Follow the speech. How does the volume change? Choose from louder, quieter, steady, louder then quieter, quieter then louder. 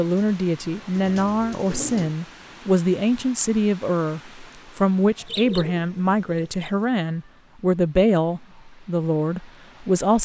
steady.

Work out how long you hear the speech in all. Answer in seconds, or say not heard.
10 s.